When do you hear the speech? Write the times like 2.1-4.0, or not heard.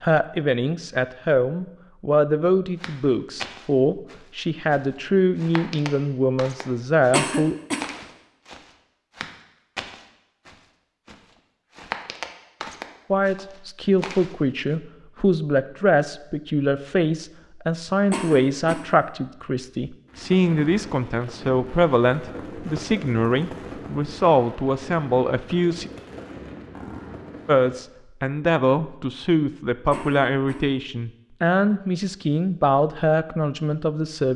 0.0-7.5, 13.1-25.9, 27.4-34.3.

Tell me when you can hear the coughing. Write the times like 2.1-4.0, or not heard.
7.1-7.8, 18.1-18.9, 29.9-30.6.